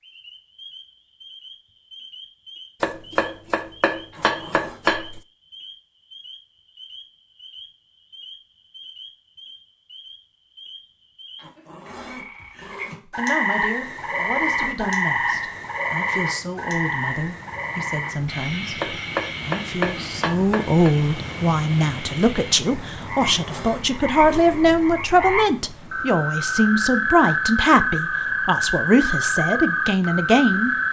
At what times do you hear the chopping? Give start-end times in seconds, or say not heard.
2.8-5.2, 18.8-20.9.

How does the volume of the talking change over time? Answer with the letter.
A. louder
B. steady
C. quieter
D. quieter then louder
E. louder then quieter
A.